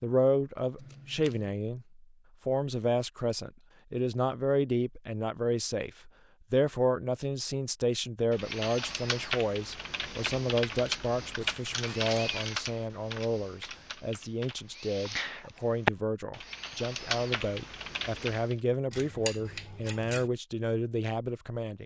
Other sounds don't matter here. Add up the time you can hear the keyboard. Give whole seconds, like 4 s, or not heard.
10 s.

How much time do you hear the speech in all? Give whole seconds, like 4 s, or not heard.
22 s.